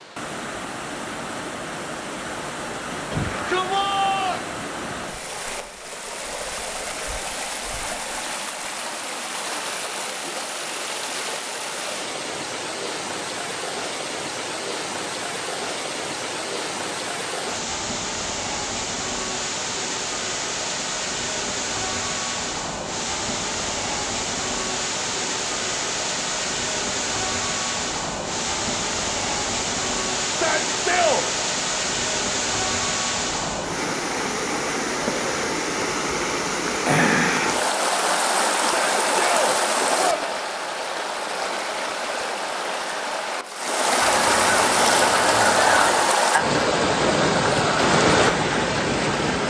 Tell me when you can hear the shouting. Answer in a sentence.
You can hear the shouting from 3.1 to 4.5 s, from 30.2 to 31.2 s and from 38.5 to 40.3 s.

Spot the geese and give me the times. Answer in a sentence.
The geese can be heard from 44.0 to 46.1 s.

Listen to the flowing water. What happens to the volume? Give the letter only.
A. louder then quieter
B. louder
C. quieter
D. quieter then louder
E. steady
B.